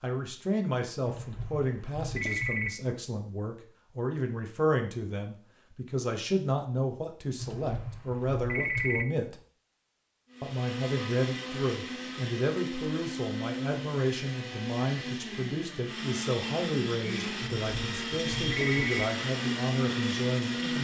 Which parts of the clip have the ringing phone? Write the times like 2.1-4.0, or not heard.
1.1-2.7, 7.4-9.1, 17.4-19.1.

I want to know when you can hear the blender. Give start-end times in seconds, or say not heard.
10.3-20.8.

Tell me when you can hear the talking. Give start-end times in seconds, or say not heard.
0.0-9.4, 10.4-20.8.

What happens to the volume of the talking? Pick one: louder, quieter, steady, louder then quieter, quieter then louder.
steady.